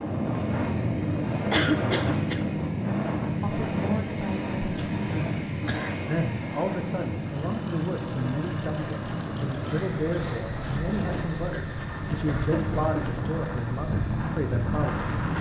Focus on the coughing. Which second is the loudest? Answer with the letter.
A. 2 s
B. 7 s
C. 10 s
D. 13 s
A.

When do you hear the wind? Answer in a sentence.
The wind can be heard from 0.0 to 15.3 s.